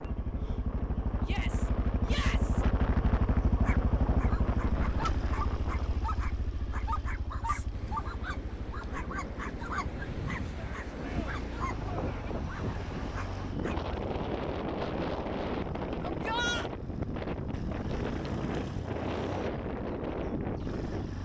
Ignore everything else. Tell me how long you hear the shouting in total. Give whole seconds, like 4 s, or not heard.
4 s.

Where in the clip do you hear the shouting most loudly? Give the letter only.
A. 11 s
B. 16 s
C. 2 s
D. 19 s
B.